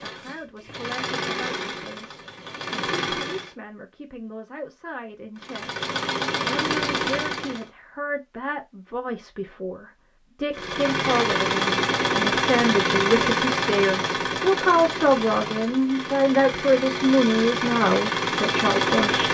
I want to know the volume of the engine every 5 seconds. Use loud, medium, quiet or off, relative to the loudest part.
medium, loud, loud, loud.